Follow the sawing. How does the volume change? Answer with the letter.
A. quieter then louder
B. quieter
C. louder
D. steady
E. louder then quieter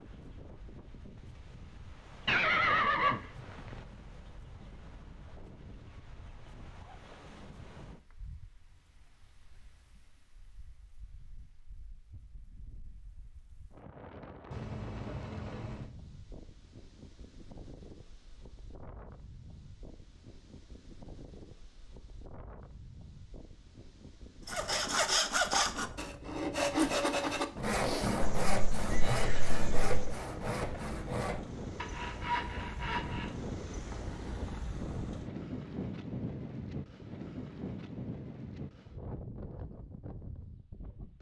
B.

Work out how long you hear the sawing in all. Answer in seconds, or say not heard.
9 s.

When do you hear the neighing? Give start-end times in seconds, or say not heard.
2.2-3.8, 14.5-15.9, 28.2-30.2.